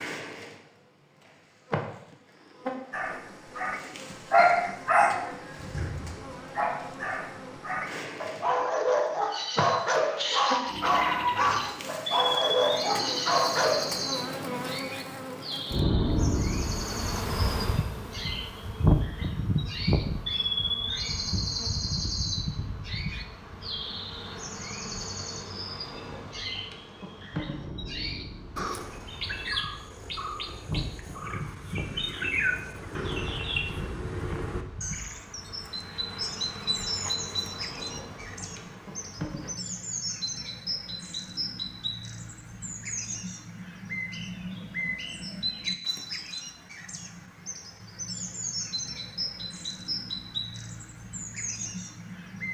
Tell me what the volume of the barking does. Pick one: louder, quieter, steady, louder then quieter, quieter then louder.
quieter then louder.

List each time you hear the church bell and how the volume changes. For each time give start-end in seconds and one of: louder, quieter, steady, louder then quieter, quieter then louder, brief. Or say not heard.
not heard.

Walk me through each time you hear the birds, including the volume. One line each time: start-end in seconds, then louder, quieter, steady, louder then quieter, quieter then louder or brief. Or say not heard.
10.7-52.4 steady.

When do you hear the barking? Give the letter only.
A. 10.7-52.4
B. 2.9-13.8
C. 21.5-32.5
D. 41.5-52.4
B.